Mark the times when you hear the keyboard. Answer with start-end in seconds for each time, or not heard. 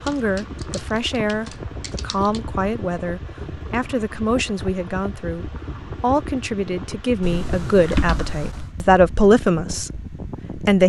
0.1-2.4, 7.2-8.7.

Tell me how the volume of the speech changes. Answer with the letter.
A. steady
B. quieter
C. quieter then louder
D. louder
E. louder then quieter
D.